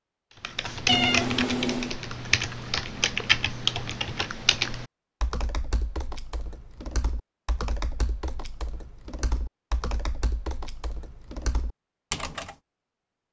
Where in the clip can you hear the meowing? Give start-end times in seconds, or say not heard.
0.8-1.9.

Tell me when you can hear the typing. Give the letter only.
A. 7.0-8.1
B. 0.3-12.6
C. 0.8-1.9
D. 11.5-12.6
B.